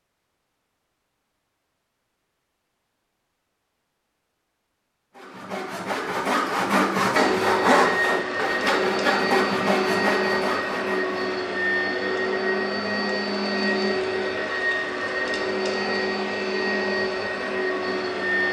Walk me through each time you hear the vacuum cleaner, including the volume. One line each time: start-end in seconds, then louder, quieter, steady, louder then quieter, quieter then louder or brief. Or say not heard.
7.2-18.4 steady.